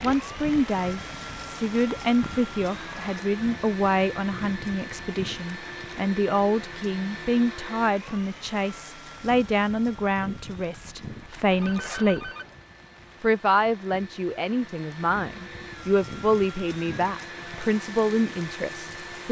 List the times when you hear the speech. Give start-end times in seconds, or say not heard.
0.0-12.3, 13.2-19.2.